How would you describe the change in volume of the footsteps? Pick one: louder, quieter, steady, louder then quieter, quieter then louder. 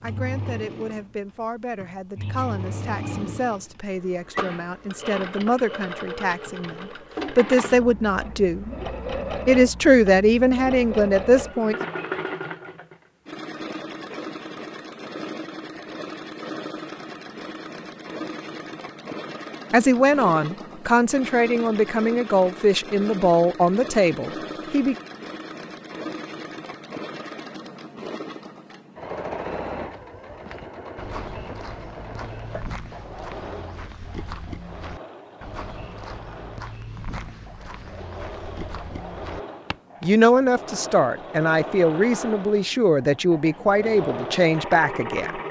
steady.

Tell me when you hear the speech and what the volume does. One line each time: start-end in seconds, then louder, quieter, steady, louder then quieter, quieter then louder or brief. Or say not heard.
0.0-8.7 louder
9.4-11.8 brief
19.7-24.9 steady
40.0-45.4 steady.